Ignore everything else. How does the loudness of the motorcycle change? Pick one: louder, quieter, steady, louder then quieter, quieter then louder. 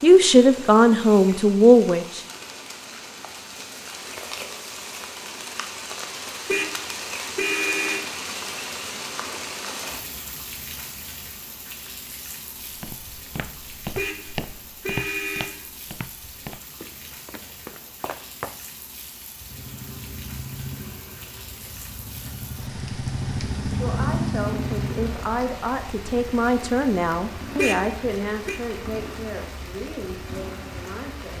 louder then quieter.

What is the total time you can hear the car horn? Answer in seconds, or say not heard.
4 s.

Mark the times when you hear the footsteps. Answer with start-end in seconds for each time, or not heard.
12.7-18.6.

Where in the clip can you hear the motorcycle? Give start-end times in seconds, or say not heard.
19.4-31.1.